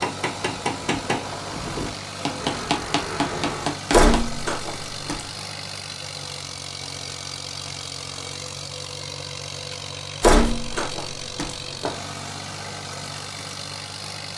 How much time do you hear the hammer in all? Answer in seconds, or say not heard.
4 s.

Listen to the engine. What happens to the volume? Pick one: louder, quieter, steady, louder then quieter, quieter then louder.
steady.